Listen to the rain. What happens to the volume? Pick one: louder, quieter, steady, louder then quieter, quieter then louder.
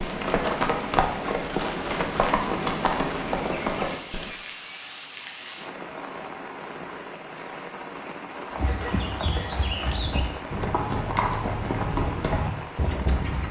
steady.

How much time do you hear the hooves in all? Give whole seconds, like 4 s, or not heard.
9 s.